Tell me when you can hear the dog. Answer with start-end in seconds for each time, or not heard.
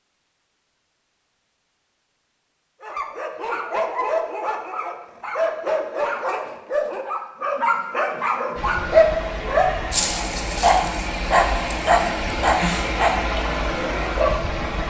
2.8-14.4.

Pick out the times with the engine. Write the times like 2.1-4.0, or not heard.
8.6-14.8.